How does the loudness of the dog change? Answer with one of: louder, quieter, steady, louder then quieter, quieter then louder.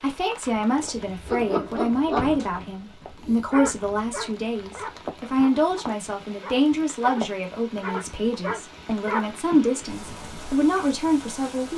quieter then louder.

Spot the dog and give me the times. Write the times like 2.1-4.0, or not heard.
1.2-9.3.